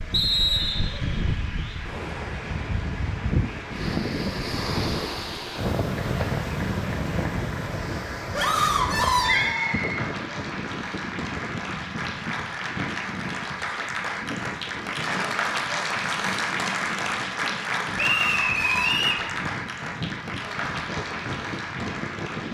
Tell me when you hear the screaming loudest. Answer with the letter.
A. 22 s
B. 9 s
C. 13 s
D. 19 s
B.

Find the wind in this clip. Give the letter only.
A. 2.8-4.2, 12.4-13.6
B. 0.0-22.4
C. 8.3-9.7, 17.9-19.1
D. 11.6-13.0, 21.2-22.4
B.